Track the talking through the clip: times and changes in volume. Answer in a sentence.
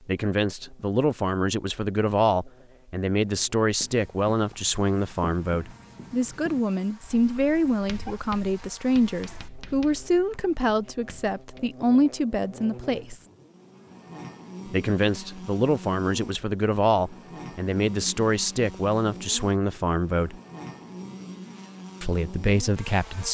The talking can be heard from 0.1 to 13.2 s, at a steady volume; from 14.7 to 20.4 s, at a steady volume; and briefly from 22.0 to 23.3 s.